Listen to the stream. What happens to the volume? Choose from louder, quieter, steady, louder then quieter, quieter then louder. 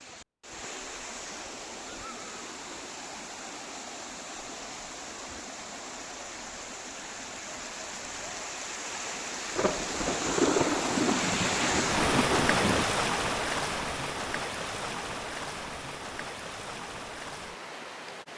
louder then quieter.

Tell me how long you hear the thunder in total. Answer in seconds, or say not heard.
3 s.